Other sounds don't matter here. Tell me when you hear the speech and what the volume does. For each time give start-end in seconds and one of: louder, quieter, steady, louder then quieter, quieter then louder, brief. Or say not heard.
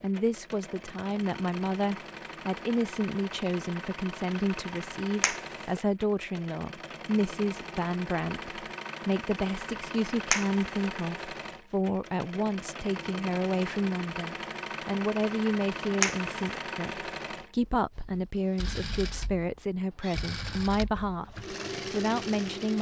0.0-22.7 steady.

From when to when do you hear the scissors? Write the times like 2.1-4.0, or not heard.
not heard.